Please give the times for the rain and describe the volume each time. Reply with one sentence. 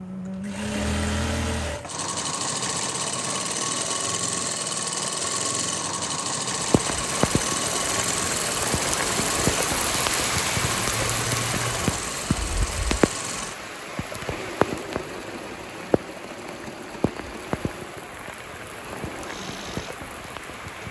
The rain can be heard from 6.5 to 20.8 s, getting quieter.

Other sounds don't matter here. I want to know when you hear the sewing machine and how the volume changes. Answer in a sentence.
You can hear the sewing machine from 0.0 to 20.8 s, getting quieter.